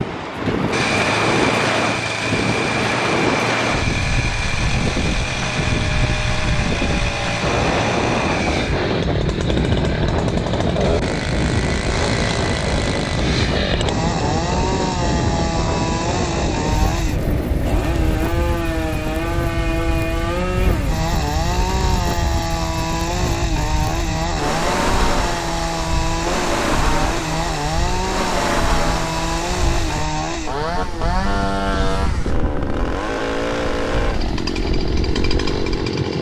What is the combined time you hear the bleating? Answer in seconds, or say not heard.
not heard.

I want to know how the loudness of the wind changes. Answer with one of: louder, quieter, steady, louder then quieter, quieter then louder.
quieter.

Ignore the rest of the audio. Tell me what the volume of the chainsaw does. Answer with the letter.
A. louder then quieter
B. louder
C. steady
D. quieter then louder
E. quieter
C.